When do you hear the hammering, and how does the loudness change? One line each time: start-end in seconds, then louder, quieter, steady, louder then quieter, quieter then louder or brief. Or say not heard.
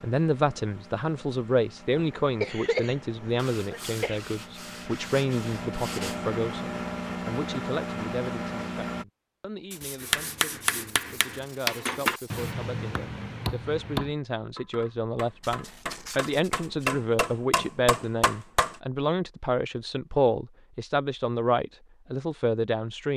10.0-18.8 quieter then louder.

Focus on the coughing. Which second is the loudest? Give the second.
3 s.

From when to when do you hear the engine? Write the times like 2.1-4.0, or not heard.
0.0-9.1.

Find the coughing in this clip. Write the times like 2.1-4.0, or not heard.
1.9-4.2.